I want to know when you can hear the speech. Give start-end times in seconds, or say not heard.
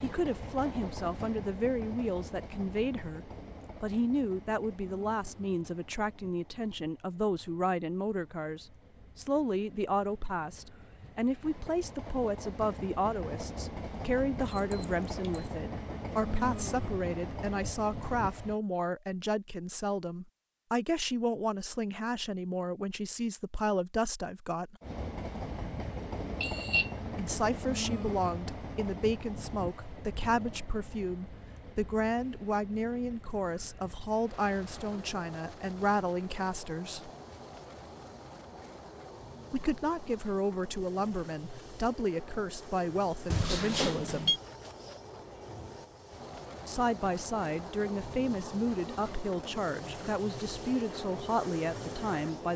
0.0-24.8, 27.1-37.1, 39.5-44.4, 46.6-52.5.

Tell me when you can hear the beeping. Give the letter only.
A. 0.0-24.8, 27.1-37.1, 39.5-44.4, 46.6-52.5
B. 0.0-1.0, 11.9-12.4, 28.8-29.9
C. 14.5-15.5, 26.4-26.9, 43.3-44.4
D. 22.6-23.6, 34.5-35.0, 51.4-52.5
C.